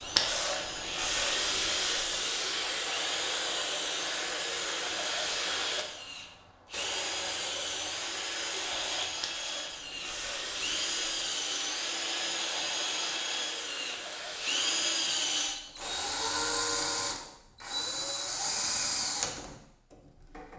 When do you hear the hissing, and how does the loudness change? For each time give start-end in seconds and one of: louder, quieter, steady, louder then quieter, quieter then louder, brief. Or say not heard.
0.0-16.5 quieter.